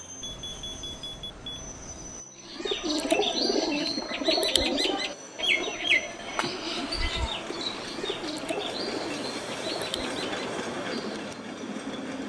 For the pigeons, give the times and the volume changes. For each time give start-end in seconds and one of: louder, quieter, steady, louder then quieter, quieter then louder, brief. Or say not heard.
2.5-11.3 quieter.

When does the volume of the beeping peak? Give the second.
1 s.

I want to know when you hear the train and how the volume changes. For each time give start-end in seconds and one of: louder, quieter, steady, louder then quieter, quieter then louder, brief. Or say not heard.
0.0-12.2 louder.